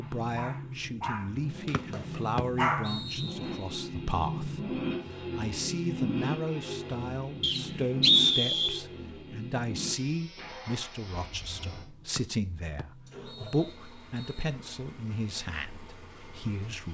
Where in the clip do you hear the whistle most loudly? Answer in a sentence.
The volume of the whistle peaks at 8 seconds.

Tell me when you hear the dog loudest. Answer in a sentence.
The loudest moment of the dog is at 3 seconds.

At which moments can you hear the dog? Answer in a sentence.
You can hear the dog from 0.0 to 3.6 s.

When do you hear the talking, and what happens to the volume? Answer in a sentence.
The talking can be heard from 0.0 to 16.8 s, at a steady volume.